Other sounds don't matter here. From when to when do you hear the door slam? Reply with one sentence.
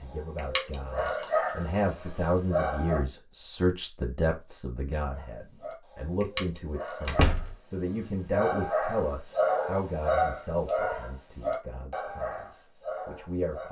The door slam can be heard from 7.0 to 7.5 s.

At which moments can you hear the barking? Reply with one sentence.
You can hear the barking from 0.0 to 3.0 s and from 5.1 to 13.6 s.